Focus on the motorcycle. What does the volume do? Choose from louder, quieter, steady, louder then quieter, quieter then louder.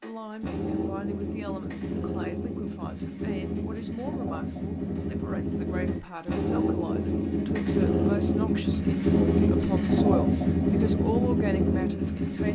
louder.